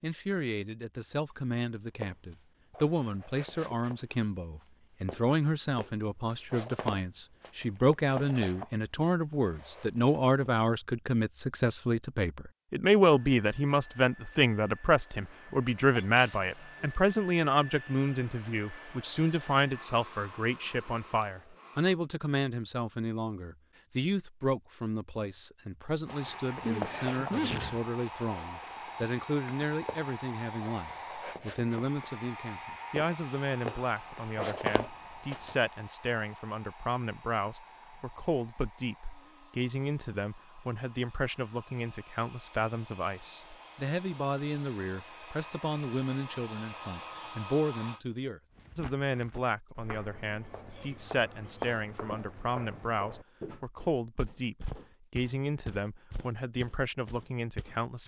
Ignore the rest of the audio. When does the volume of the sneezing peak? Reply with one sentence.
The volume of the sneezing peaks at 27 seconds.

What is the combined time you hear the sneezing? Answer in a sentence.
You can hear the sneezing for 4 seconds altogether.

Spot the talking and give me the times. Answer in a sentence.
The talking can be heard from 0.0 to 58.0 s.